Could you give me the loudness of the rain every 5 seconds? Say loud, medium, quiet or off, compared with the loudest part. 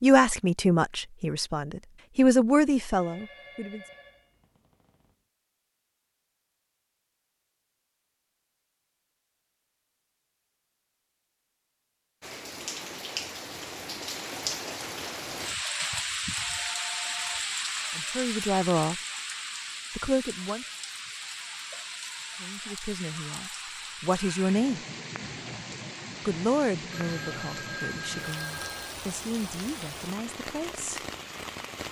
off, off, loud, loud, medium, medium, medium.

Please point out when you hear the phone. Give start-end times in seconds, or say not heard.
2.9-5.2, 16.4-17.4, 26.9-28.9.